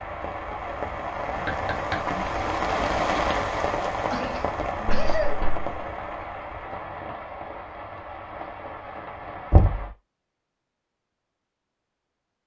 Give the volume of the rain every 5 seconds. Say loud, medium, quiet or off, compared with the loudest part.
loud, medium, off.